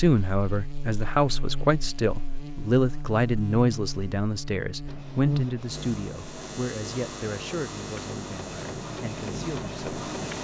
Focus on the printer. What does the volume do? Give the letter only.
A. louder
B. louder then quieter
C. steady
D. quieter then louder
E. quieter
A.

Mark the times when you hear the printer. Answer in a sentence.
The printer can be heard from 4.8 to 10.3 s.